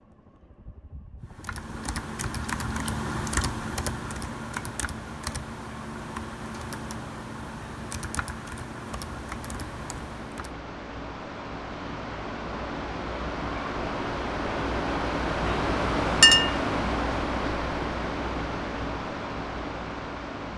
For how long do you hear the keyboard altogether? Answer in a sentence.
You can hear the keyboard for 9 seconds altogether.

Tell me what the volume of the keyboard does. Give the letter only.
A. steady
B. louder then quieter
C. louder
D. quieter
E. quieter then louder
D.